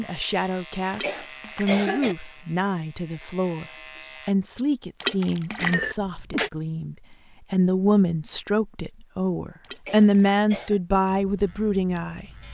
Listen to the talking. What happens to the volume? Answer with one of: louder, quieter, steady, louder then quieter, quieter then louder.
louder.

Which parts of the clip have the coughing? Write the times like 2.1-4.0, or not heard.
1.0-2.1, 5.5-6.5, 9.8-10.8.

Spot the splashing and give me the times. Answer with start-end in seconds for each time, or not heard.
0.9-1.7, 5.0-5.8, 9.6-10.4.